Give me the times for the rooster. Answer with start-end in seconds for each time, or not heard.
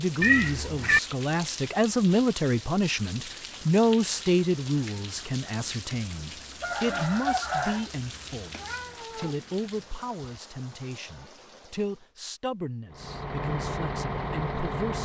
6.6-7.9.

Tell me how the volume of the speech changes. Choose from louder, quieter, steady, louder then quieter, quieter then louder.
quieter.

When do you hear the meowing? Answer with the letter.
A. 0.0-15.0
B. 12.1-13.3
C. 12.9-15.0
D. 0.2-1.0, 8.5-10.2
D.